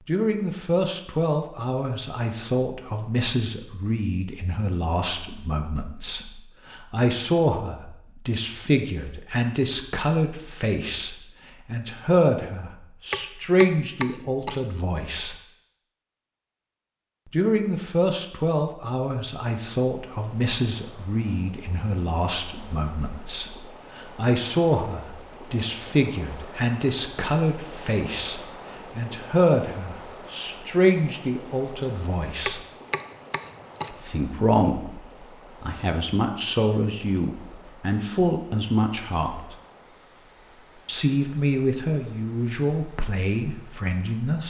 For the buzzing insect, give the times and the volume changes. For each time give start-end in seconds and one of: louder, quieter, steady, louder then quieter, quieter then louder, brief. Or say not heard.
not heard.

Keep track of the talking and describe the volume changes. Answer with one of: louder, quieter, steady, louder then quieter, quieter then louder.
steady.